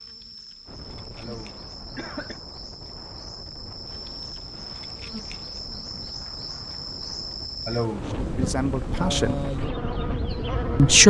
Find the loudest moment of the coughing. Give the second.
8 s.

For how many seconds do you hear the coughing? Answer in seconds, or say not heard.
2 s.